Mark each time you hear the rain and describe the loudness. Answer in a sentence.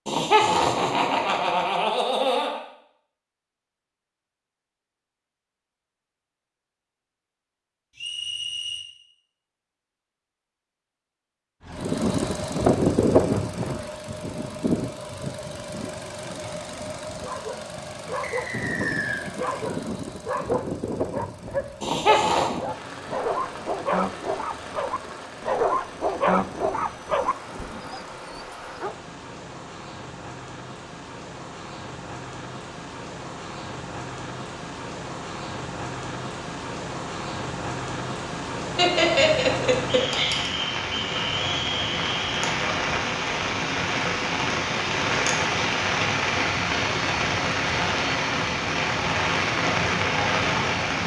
The rain can be heard from 22.6 to 51.0 s, getting louder.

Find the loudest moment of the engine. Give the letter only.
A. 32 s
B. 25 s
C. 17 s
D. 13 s
D.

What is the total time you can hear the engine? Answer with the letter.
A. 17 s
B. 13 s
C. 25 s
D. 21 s
A.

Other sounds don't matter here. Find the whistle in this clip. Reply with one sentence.
The whistle can be heard from 8.0 to 8.8 s, from 18.2 to 19.2 s and from 39.9 to 42.5 s.